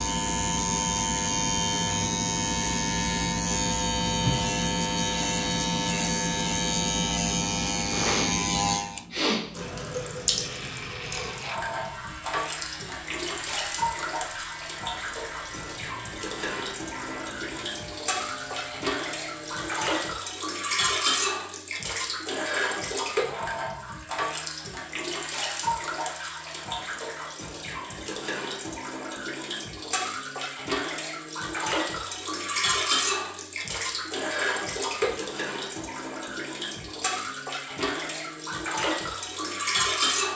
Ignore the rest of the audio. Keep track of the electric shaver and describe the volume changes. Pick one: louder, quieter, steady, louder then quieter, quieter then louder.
quieter.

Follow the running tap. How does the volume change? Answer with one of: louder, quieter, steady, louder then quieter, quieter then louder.
steady.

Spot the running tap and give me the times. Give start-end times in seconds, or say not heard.
9.5-40.3.